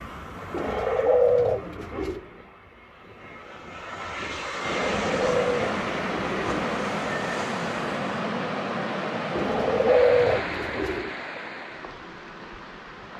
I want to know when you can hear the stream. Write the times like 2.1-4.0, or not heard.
4.5-13.1.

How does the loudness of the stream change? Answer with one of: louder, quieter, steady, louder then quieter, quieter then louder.
quieter.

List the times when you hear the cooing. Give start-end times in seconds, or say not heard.
0.5-2.2, 4.9-6.7, 9.3-11.1.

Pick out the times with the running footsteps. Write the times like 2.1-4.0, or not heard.
not heard.